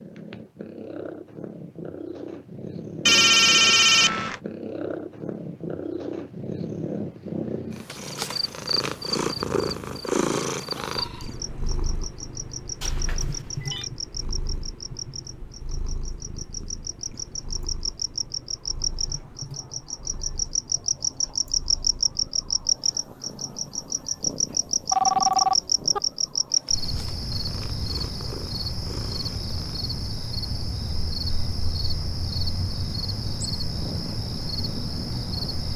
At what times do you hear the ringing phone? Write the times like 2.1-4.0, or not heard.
3.0-4.4, 12.8-13.8, 24.9-26.0.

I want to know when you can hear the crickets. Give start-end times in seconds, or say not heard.
8.1-35.7.